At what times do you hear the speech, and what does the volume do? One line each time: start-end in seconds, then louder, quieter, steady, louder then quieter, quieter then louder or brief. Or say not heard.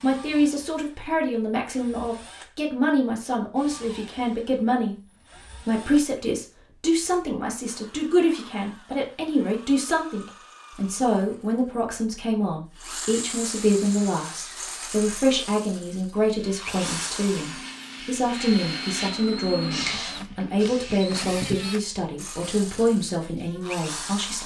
0.0-24.4 steady.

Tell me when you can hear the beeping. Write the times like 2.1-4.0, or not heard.
not heard.